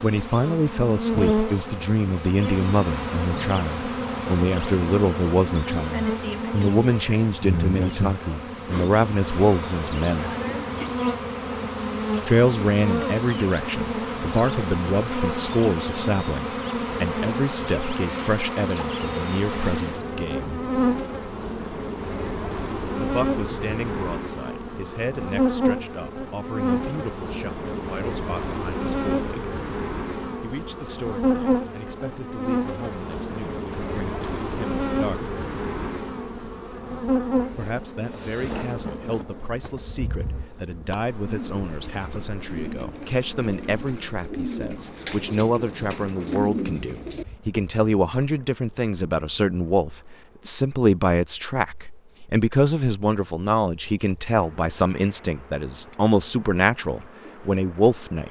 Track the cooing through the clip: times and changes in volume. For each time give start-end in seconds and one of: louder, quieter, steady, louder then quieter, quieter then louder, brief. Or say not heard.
41.2-47.6 louder.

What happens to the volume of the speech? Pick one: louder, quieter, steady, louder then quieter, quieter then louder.
quieter then louder.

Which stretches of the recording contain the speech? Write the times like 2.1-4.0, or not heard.
0.0-10.3, 12.2-20.6, 22.9-29.3, 30.4-35.4, 37.5-58.2.